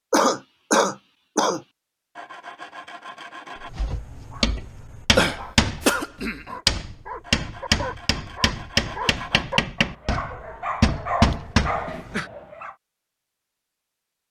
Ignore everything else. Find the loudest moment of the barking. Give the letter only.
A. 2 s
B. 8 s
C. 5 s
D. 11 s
D.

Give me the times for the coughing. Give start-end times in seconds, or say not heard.
0.1-1.6, 5.2-6.5, 11.3-12.3.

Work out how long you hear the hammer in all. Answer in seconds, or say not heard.
8 s.